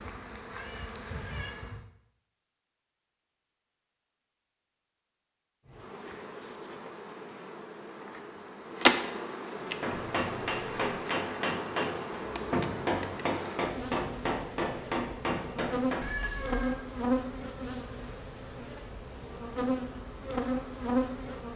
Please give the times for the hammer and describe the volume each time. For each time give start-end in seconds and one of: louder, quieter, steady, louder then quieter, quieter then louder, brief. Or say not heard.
9.5-16.3 steady.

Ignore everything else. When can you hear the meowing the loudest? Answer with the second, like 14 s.
16 s.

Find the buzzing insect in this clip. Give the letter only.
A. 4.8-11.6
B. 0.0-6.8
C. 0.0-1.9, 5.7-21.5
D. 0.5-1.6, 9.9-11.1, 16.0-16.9
C.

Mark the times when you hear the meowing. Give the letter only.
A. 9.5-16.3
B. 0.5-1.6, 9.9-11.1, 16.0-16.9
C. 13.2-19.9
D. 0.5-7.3
B.